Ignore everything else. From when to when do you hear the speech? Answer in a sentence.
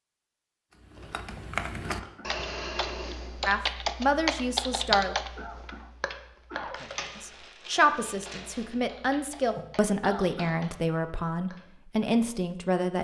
The speech can be heard from 3.5 to 5.2 s and from 7.2 to 13.0 s.